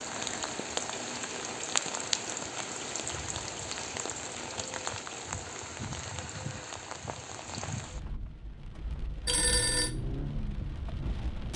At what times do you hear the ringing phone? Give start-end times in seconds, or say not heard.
9.2-9.9.